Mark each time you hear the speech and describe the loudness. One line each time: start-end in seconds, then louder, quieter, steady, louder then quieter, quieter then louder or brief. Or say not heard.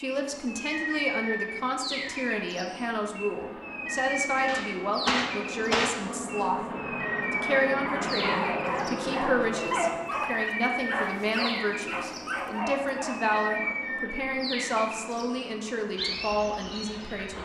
0.0-17.3 steady.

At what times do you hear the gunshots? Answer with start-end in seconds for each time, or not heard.
4.5-6.0.